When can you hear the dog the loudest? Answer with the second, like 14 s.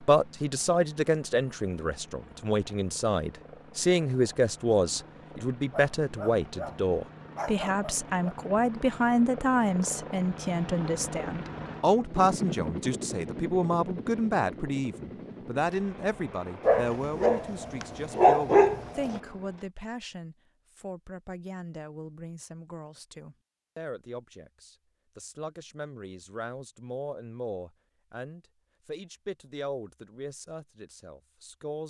18 s.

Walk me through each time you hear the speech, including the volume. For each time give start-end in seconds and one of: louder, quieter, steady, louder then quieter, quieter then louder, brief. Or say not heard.
0.0-31.8 quieter.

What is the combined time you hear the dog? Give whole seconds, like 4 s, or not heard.
5 s.